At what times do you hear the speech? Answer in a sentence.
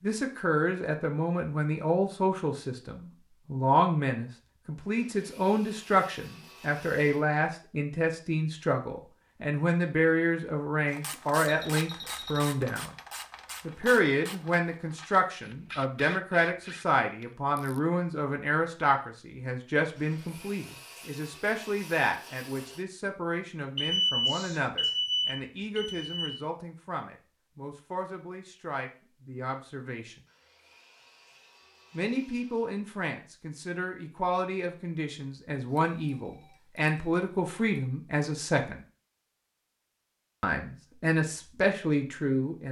You can hear the speech from 0.0 to 12.9 s, from 13.7 to 30.2 s, from 31.9 to 38.9 s and from 40.4 to 42.6 s.